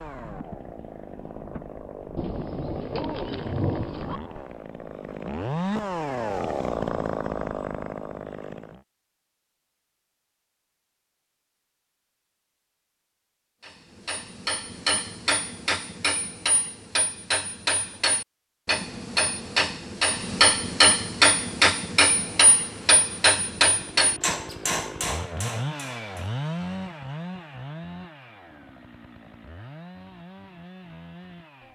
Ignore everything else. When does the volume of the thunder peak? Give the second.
4 s.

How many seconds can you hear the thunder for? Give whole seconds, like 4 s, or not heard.
2 s.